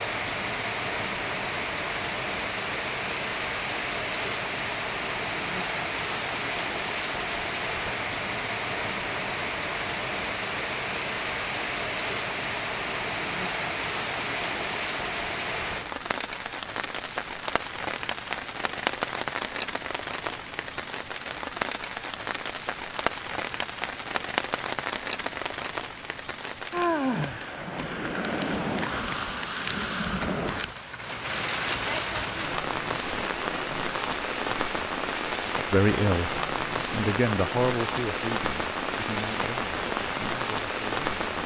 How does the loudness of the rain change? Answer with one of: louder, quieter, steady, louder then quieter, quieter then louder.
steady.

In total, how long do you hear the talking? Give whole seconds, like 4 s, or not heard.
6 s.